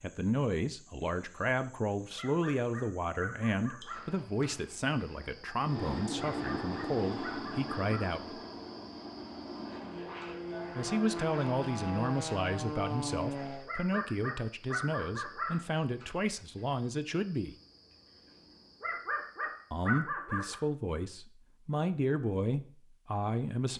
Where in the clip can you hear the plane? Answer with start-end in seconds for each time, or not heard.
5.5-13.7.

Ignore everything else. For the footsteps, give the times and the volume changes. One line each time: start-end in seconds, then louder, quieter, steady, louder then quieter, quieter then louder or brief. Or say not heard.
not heard.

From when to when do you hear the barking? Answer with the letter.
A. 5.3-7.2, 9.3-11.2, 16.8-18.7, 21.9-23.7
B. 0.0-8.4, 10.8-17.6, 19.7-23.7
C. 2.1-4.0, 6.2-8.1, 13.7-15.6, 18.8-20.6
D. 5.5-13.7
C.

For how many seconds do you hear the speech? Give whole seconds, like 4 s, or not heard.
19 s.